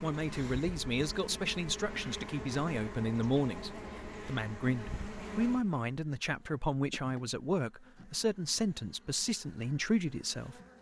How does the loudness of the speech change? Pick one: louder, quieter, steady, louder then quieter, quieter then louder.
steady.